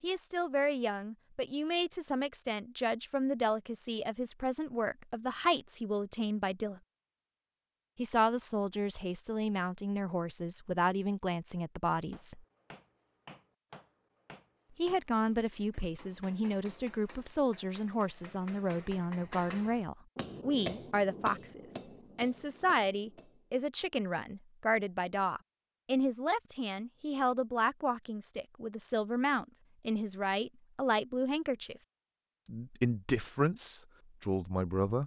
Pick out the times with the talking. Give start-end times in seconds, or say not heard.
0.0-6.8, 8.0-12.4, 14.8-31.8, 32.5-35.0.